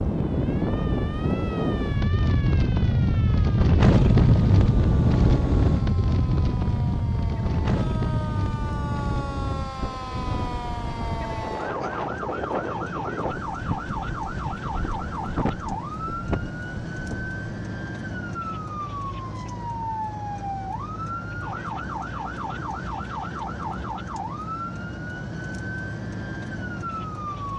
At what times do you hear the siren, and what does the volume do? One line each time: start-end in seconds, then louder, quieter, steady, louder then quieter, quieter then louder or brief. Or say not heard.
0.0-27.5 louder.